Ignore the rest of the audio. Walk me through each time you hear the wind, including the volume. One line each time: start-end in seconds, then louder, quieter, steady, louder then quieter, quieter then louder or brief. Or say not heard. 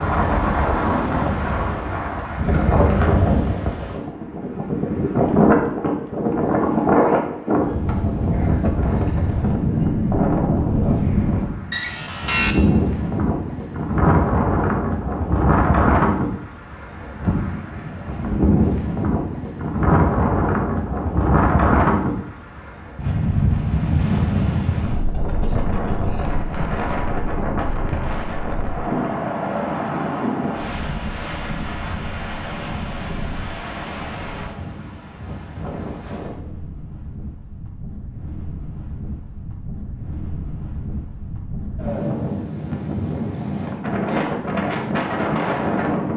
0.0-46.1 quieter.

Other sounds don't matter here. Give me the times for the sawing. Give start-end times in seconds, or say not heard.
11.7-12.6.